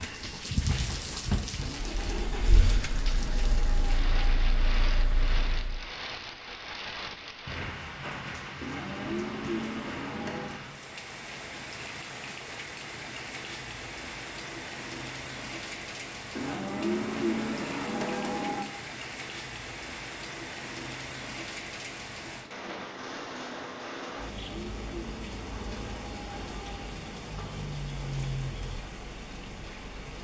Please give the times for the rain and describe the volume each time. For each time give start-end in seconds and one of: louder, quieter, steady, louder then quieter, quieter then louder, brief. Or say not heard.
0.0-30.1 steady.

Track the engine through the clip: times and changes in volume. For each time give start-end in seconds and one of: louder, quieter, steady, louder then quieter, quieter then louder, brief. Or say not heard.
0.0-5.9 louder.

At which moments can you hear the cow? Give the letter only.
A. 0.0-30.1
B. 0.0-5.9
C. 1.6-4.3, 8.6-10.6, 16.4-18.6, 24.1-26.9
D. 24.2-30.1
C.